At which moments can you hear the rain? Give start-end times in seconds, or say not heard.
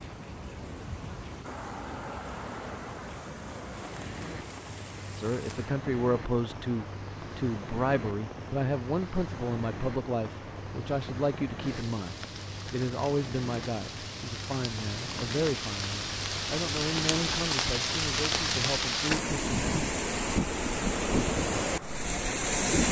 0.0-22.8.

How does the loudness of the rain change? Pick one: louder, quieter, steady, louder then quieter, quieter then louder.
louder.